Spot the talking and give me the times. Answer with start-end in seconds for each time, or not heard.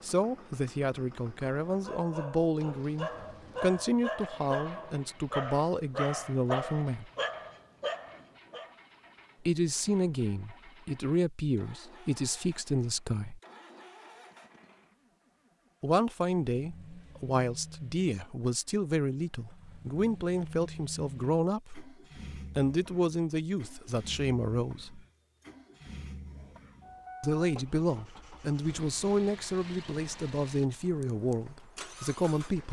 0.0-7.1, 9.4-13.4, 15.8-25.0, 27.2-32.6.